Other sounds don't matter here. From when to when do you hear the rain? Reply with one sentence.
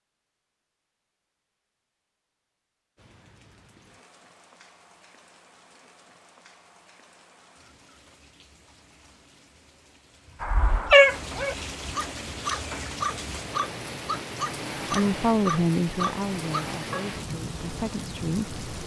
You can hear the rain from 3.0 to 18.8 s.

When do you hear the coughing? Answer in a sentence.
The coughing can't be heard in this clip.